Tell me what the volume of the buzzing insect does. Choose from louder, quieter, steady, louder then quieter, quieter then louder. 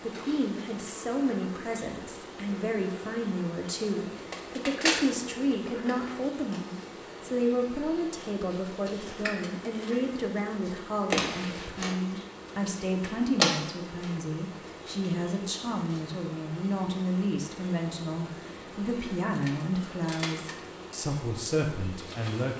louder then quieter.